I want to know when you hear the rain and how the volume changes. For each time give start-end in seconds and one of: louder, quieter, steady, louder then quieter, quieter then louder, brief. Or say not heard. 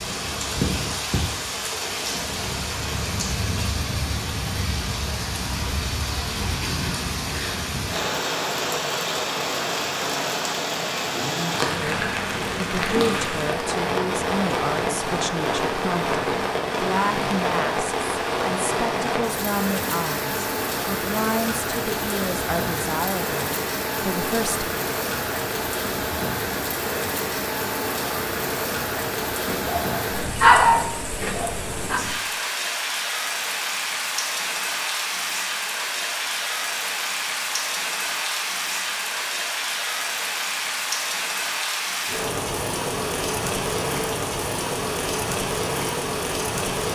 0.0-46.9 steady.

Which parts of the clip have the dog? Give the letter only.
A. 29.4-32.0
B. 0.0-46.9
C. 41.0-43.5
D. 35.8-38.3
A.